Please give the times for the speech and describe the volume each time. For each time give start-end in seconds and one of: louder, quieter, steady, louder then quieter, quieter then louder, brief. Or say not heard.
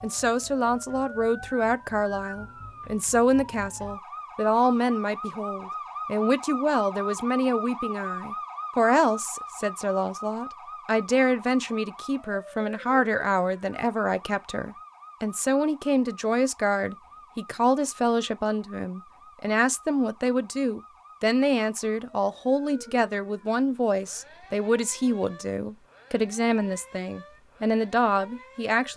0.0-28.9 steady.